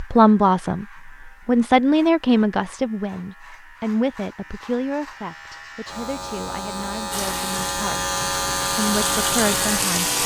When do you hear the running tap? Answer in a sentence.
You can hear the running tap from 7.1 to 10.2 s.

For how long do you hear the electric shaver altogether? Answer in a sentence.
The electric shaver can be heard for 10 seconds in total.